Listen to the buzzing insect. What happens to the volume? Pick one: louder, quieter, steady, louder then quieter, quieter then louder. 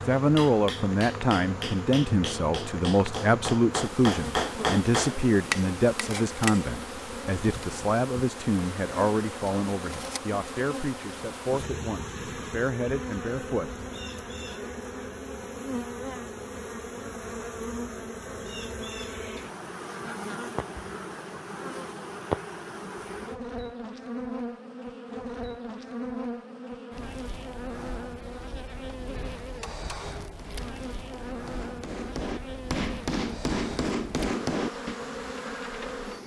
steady.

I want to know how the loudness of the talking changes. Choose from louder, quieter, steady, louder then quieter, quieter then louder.
quieter.